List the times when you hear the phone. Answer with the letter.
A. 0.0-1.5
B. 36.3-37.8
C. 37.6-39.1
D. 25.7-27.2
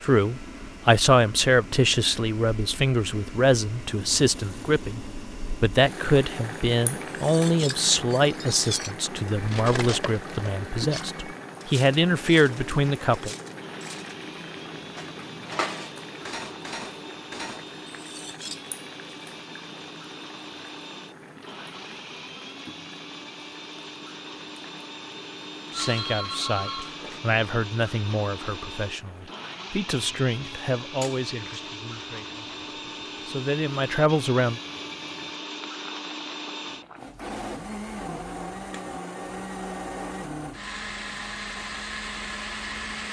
D.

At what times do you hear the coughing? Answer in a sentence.
You can't hear the coughing here.